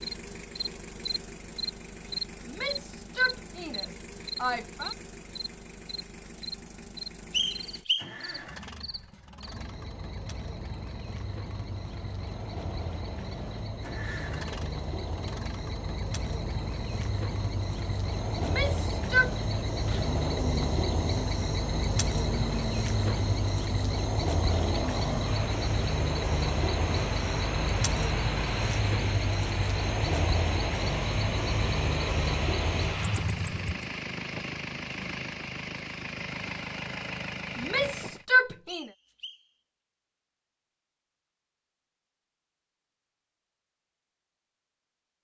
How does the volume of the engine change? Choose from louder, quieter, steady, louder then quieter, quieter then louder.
louder.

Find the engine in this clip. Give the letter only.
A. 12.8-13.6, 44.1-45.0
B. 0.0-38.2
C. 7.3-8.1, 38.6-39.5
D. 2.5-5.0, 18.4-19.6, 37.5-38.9
B.